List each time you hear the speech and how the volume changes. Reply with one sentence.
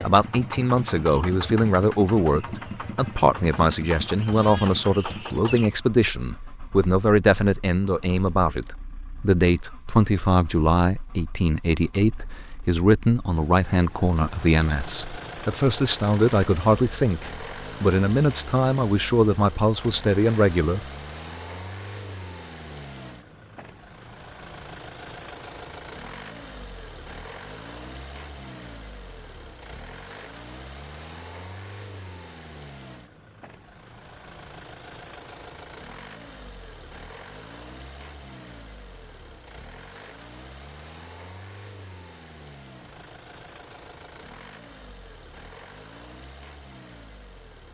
You can hear the speech from 0.0 to 20.9 s, at a steady volume.